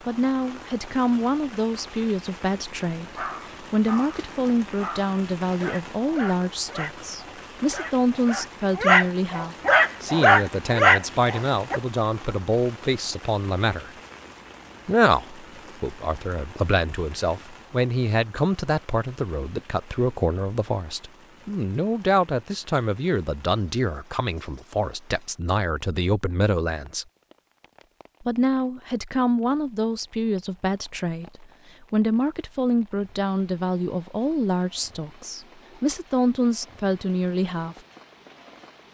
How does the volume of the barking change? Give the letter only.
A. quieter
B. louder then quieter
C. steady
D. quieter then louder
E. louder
E.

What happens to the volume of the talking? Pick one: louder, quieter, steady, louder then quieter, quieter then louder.
steady.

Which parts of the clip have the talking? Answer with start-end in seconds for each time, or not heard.
0.1-13.9, 14.8-27.1, 28.2-37.8.